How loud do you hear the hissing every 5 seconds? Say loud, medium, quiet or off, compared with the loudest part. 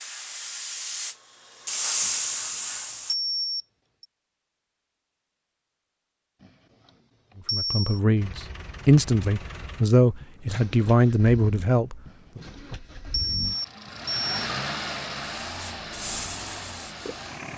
loud, off, off, medium.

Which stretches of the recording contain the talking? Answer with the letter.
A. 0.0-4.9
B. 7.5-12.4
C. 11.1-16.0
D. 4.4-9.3
B.